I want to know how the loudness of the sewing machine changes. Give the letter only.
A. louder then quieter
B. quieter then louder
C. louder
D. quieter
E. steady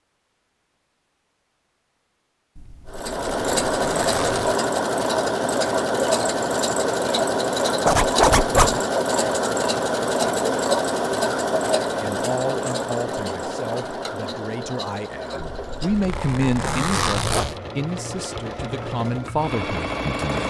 D.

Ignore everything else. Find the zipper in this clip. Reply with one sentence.
You can hear the zipper from 2.5 to 4.6 s, from 7.8 to 8.8 s and from 15.4 to 17.6 s.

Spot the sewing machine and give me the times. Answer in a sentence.
You can hear the sewing machine from 2.9 to 20.4 s.